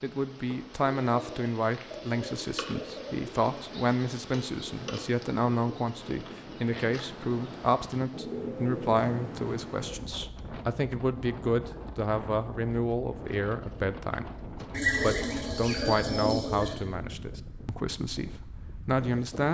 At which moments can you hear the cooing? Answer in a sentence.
The cooing can be heard from 1.1 to 3.8 s, from 8.1 to 10.0 s and from 14.7 to 16.8 s.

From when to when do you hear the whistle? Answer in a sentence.
The whistle can't be heard in this clip.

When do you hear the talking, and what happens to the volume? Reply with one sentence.
You can hear the talking from 0.0 to 19.4 s, at a steady volume.